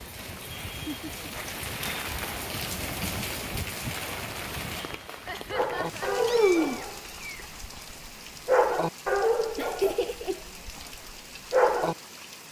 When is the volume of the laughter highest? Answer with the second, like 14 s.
10 s.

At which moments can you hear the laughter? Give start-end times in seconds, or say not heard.
0.5-1.1, 5.2-6.2, 9.6-10.4.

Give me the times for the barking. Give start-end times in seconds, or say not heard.
5.5-11.9.